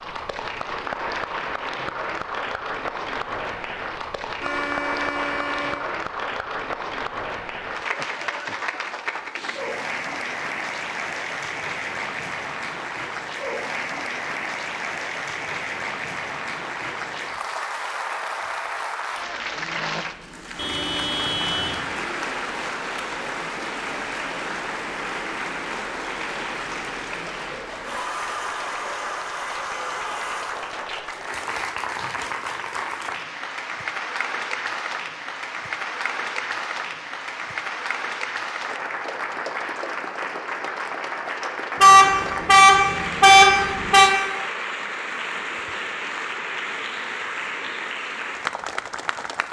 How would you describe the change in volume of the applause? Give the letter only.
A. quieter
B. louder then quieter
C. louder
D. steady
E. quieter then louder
D.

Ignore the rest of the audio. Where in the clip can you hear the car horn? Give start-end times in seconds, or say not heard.
4.3-5.8, 20.6-22.0, 41.8-44.1.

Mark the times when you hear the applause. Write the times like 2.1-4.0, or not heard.
0.0-49.4.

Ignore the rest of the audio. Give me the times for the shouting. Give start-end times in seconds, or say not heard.
not heard.